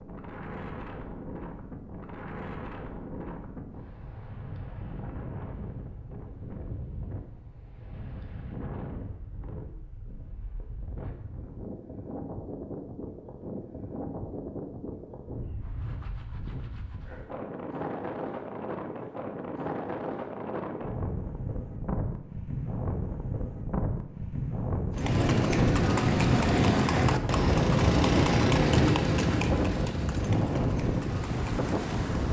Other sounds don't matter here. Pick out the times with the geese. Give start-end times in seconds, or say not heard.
not heard.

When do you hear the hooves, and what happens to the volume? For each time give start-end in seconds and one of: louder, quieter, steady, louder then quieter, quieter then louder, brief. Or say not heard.
24.9-32.2 quieter.